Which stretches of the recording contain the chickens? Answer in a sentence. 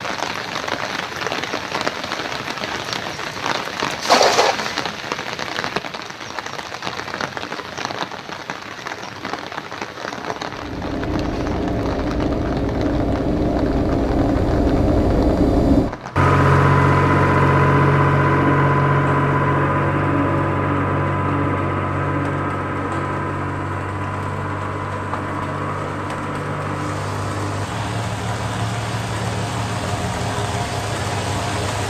You can't hear the chickens here.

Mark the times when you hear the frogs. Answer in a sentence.
You can't hear the frogs here.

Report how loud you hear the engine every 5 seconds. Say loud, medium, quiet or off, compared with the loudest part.
off, off, medium, loud, medium, medium, medium.